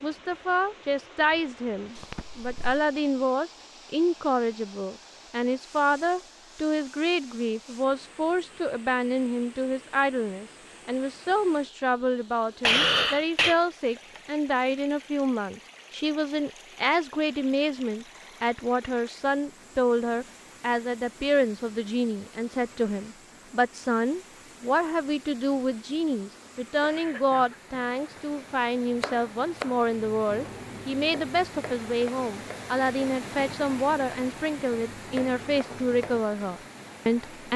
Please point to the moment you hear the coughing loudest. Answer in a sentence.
The volume of the coughing peaks at 13 seconds.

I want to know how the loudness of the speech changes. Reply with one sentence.
The volume of the speech stays about the same.